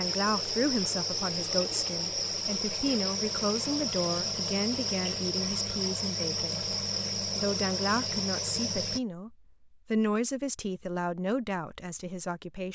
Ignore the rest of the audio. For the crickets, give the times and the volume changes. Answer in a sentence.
You can hear the crickets from 0.0 to 9.0 s, at a steady volume.